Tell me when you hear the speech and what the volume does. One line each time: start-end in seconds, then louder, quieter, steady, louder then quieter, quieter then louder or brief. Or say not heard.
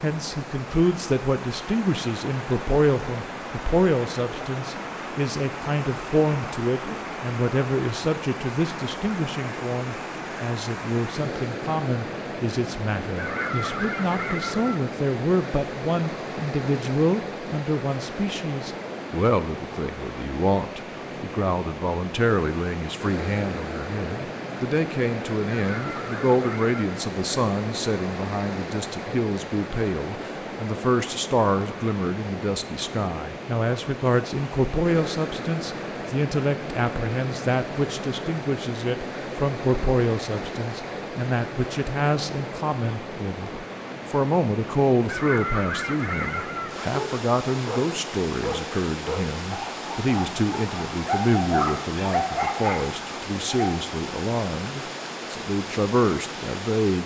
0.0-57.0 steady.